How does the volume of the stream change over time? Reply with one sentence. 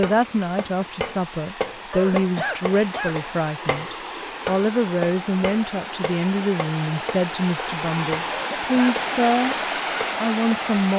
The loudness of the stream goes up.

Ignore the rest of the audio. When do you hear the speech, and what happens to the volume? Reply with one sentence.
The speech can be heard from 0.0 to 9.6 s, at a steady volume; and briefly from 10.2 to 10.9 s.